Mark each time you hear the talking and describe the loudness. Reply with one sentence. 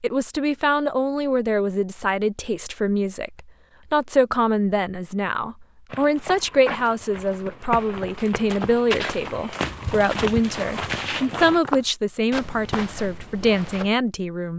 The talking can be heard from 0.0 to 14.5 s, at a steady volume.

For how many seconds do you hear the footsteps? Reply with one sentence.
You can hear the footsteps for 8 seconds altogether.